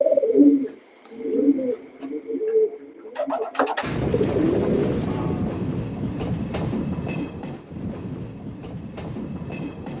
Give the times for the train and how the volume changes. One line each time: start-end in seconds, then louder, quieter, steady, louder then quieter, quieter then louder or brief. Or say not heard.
3.8-9.9 quieter.